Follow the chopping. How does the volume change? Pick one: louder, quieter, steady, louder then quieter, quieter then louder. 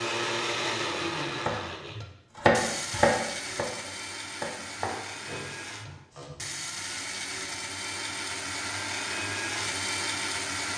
louder then quieter.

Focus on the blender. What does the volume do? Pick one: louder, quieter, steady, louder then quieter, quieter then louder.
quieter then louder.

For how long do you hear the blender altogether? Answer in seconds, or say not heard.
11 s.